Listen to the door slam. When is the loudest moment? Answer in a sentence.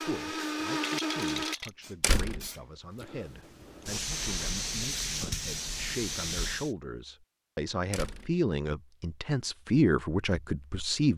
The volume of the door slam peaks at 2 seconds.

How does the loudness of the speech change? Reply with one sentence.
The loudness of the speech goes up.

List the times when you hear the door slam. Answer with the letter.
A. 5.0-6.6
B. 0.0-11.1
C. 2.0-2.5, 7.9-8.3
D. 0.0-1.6
C.